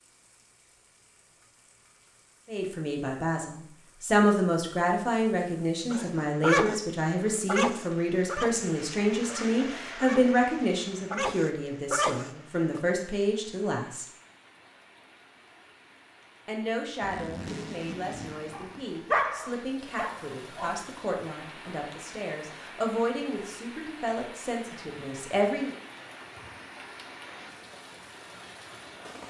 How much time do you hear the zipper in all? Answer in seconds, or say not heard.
2 s.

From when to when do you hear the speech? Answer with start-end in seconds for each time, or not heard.
2.5-14.1, 16.4-25.8.